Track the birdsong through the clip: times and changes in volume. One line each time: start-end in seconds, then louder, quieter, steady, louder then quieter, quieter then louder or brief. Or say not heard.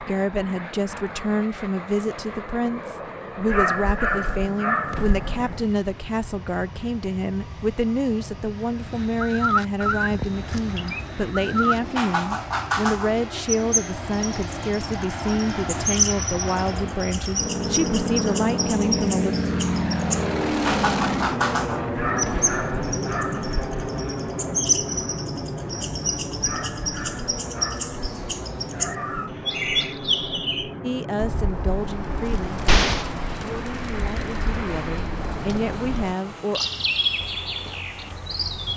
8.8-38.7 steady.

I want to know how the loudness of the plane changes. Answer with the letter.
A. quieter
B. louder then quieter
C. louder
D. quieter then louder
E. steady
B.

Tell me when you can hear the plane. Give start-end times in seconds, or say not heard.
0.0-38.7.